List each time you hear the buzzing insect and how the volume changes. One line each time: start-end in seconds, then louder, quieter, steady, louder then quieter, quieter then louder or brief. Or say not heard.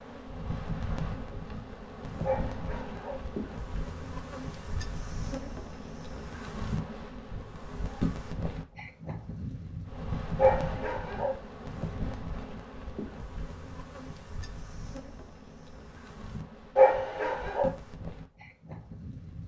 0.0-19.4 quieter.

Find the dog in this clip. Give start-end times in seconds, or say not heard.
2.2-3.2, 10.3-11.3, 16.8-17.7.